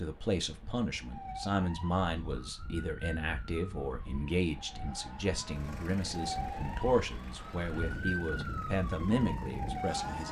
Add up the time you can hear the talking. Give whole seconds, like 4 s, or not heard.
10 s.